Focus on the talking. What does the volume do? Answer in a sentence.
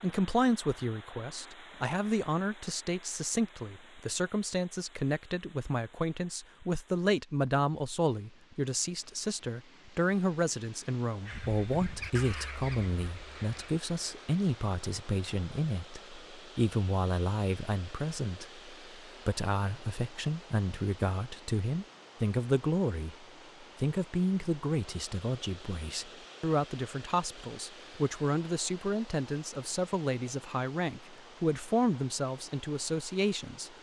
The loudness of the talking stays about the same.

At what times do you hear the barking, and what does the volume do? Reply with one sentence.
You can't hear the barking here.